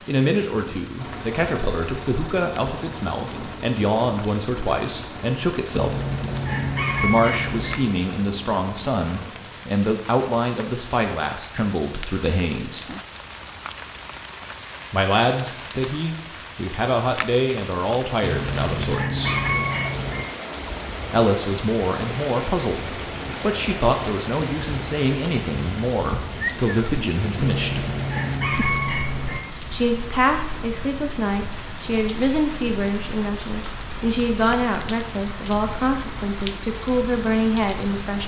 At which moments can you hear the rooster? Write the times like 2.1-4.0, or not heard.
5.7-7.8, 18.2-20.2, 27.4-29.4.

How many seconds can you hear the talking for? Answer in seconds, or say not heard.
32 s.